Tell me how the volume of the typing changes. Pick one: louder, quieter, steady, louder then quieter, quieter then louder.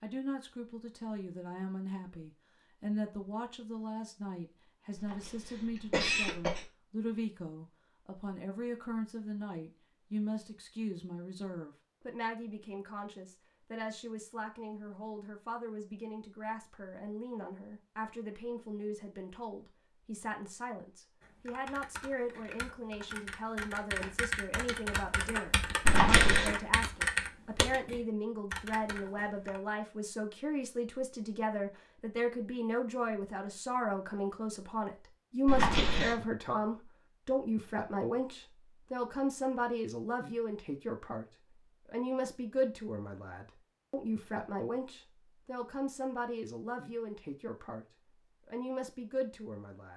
louder then quieter.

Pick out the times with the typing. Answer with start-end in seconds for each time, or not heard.
21.2-29.6.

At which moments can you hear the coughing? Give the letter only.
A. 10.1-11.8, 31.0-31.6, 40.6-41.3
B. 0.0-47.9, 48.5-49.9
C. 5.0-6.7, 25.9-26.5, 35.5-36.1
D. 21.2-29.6
C.